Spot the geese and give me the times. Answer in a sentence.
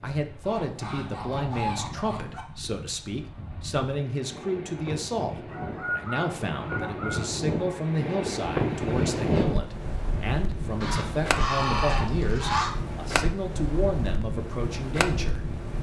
The geese can be heard from 0.4 to 2.5 s, from 5.5 to 7.8 s and from 10.8 to 12.7 s.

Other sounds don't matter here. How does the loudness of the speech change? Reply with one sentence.
The volume of the speech stays about the same.